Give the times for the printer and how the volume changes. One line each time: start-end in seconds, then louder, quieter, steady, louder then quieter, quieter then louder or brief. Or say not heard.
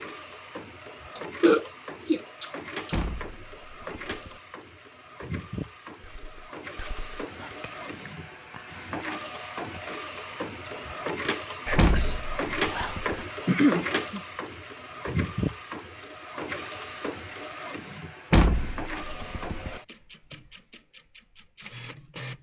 0.0-22.3 louder then quieter.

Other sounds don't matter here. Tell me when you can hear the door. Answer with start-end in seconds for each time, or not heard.
2.9-4.4, 11.8-13.2, 18.3-19.8.